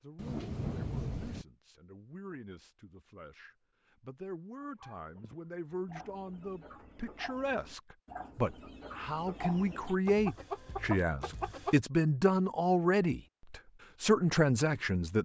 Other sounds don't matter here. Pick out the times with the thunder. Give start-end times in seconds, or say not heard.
0.1-1.4.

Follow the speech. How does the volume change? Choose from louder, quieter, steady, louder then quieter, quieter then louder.
louder.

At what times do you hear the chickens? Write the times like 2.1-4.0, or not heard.
4.6-11.8.